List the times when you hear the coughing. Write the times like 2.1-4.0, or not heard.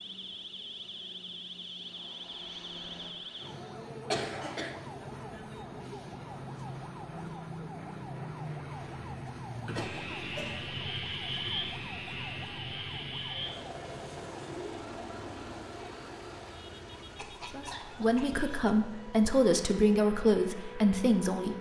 4.1-4.8, 9.6-10.8, 17.1-18.8.